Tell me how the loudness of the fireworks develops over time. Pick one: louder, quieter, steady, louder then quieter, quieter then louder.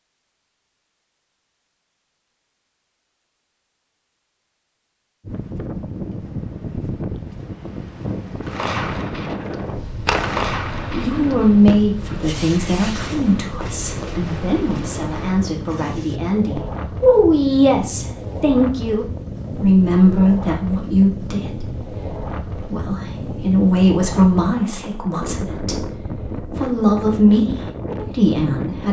quieter.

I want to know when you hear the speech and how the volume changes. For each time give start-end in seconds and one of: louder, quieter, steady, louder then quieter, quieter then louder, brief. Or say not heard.
10.8-28.8 steady.